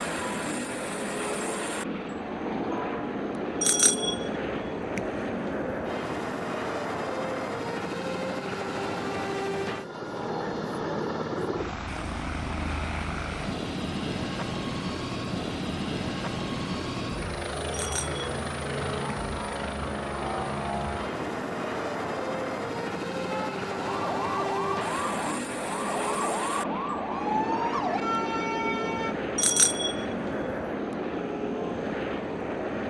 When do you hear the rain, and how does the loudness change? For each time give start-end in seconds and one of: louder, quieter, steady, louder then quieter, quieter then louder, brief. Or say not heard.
not heard.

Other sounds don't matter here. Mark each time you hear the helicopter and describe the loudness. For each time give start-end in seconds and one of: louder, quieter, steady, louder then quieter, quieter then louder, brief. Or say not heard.
0.0-32.8 steady.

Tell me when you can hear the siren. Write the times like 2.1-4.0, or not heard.
23.3-29.1.